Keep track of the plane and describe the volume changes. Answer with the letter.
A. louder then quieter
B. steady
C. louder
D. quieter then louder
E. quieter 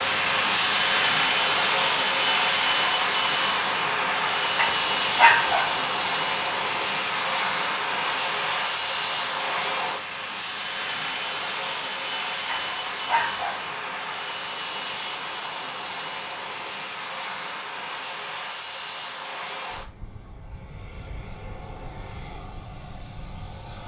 E.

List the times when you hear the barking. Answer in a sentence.
The barking can be heard from 4.5 to 5.7 s and from 12.4 to 13.6 s.